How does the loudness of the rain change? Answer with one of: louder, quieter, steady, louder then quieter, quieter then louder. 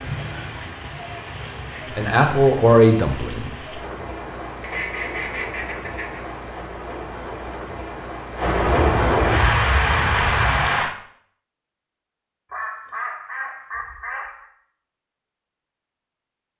louder.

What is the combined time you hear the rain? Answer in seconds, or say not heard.
11 s.